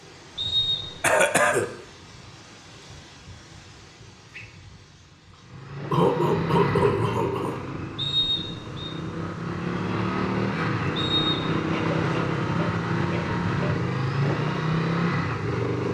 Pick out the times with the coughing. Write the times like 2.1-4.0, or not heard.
1.0-1.7, 5.9-7.6, 11.7-13.8.